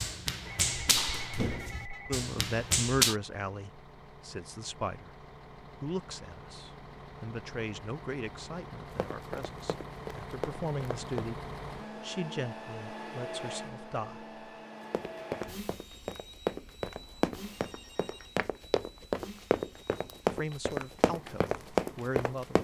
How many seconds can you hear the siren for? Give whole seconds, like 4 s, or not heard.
not heard.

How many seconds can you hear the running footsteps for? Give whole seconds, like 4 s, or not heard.
13 s.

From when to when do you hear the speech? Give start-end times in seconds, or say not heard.
2.1-14.3, 20.3-22.5.